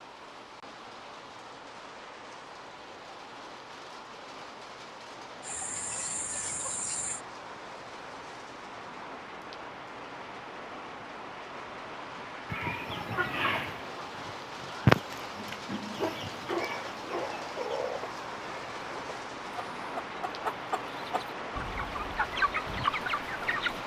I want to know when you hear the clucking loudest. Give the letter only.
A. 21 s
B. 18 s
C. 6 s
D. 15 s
D.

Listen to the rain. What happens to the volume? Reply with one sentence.
The loudness of the rain goes up.